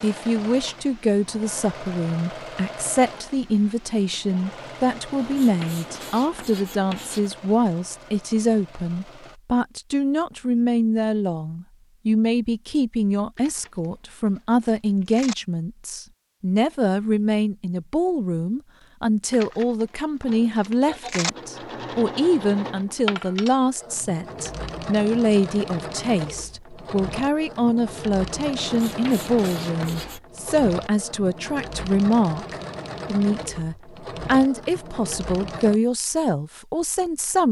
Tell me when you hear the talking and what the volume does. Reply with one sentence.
You can hear the talking from 0.0 to 37.4 s, at a steady volume.